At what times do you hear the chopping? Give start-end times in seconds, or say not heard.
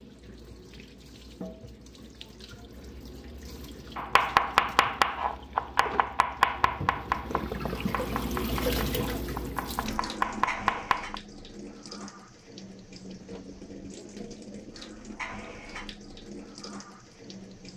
4.0-11.2.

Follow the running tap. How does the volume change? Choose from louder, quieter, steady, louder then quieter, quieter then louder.
louder then quieter.